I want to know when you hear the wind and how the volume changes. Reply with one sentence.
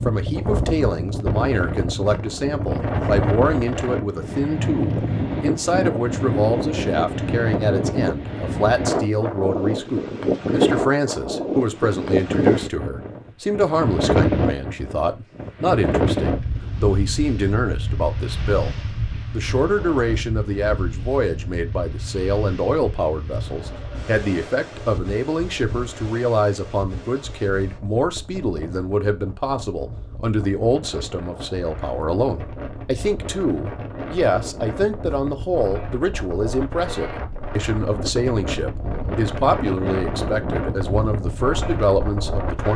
The wind can be heard from 0.0 to 42.7 s, getting quieter then louder.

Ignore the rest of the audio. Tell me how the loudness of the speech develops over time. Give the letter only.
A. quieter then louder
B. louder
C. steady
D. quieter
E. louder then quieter
C.